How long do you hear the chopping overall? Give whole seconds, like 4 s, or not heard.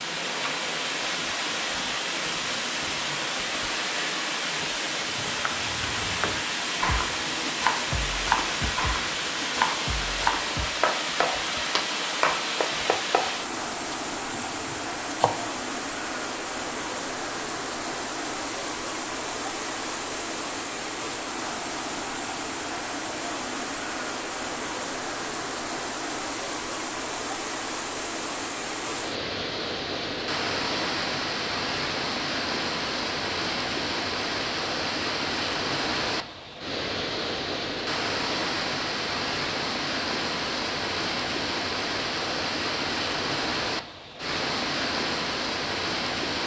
10 s.